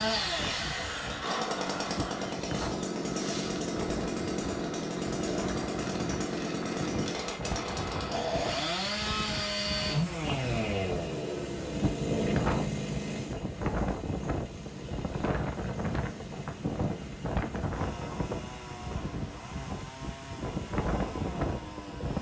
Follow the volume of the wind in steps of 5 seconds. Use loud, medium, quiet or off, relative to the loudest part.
medium, medium, loud, loud, loud.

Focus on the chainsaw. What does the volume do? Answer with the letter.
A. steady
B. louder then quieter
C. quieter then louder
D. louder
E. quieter
E.